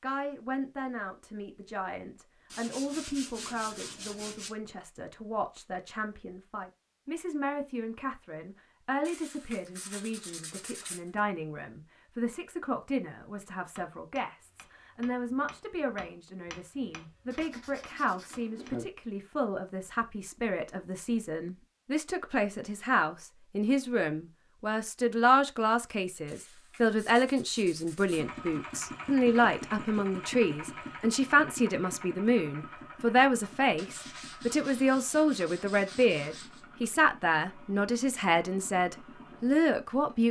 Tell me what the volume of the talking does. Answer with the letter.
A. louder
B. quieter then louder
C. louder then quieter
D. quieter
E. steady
A.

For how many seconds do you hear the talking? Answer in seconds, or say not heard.
40 s.